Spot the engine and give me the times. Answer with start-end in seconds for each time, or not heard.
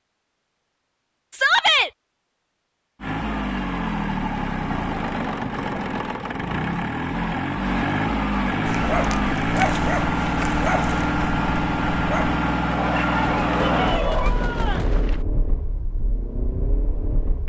3.0-17.4.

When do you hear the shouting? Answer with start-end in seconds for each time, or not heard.
1.3-1.9, 13.8-14.9.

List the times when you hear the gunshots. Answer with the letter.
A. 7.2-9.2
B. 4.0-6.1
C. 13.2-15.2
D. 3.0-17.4
C.